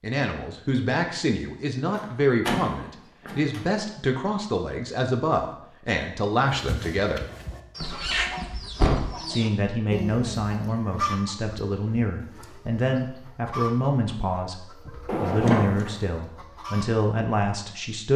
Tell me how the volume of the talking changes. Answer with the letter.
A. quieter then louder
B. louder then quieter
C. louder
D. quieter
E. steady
E.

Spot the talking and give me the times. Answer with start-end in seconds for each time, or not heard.
0.0-7.2, 9.2-18.1.